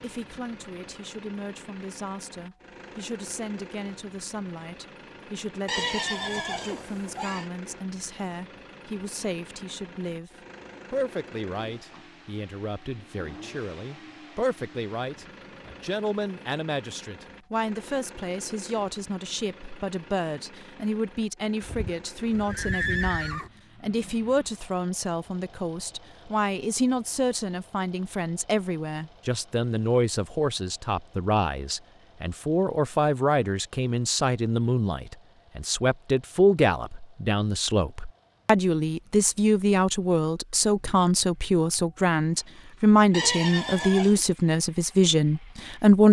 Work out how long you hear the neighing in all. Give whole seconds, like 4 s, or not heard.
5 s.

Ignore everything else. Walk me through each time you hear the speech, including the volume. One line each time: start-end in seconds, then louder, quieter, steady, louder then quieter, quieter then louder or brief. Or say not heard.
0.0-10.3 steady
10.9-46.0 louder.